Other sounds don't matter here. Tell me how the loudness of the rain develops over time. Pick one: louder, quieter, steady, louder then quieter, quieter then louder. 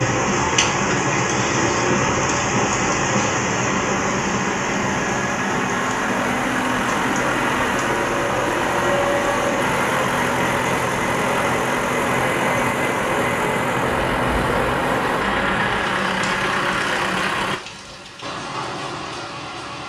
quieter.